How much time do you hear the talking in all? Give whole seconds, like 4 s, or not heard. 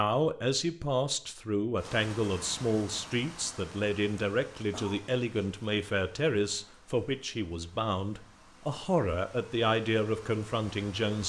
11 s.